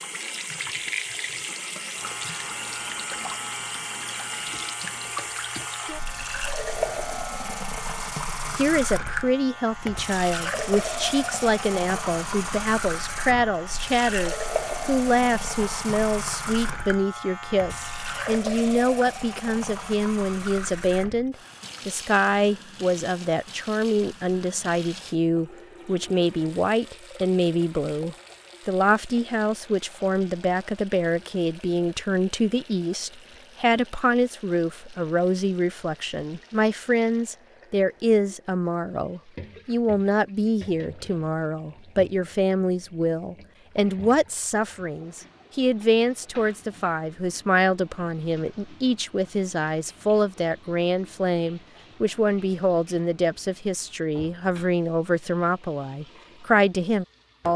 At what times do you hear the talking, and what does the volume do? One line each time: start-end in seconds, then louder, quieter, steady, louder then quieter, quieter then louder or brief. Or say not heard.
8.6-57.5 steady.